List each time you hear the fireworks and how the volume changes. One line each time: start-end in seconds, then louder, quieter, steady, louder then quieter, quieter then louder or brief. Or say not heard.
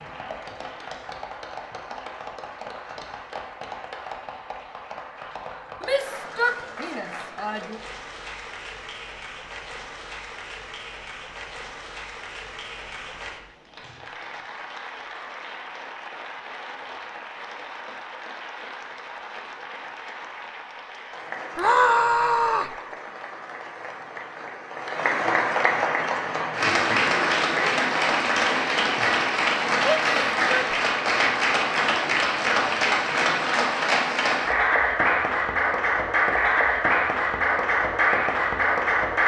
not heard.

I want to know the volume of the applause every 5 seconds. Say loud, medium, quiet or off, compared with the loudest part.
quiet, quiet, quiet, quiet, quiet, loud, loud, loud.